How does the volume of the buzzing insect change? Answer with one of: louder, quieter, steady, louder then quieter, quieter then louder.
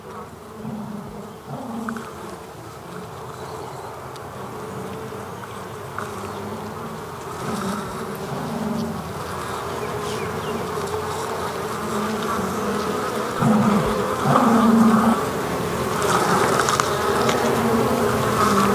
louder.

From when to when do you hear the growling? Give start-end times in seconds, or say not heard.
0.6-2.0, 7.4-8.9, 13.3-15.2.